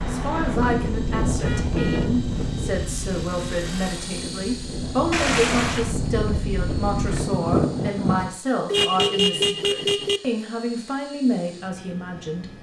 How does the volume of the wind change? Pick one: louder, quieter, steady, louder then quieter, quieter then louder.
quieter then louder.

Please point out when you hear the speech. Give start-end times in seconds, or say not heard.
0.0-12.5.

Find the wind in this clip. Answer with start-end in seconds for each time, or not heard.
0.0-8.3.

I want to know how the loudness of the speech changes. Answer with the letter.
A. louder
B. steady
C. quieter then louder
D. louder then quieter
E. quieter
B.